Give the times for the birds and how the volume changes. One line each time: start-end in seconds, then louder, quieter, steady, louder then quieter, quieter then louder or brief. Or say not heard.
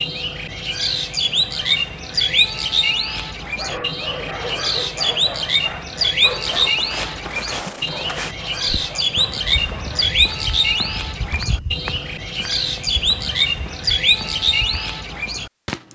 0.0-15.8 steady.